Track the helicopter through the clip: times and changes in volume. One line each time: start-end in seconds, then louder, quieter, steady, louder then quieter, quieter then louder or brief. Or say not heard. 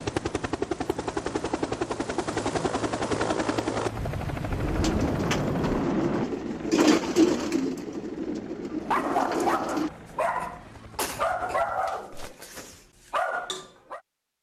0.0-12.1 quieter.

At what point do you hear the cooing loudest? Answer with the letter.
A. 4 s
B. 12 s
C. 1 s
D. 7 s
D.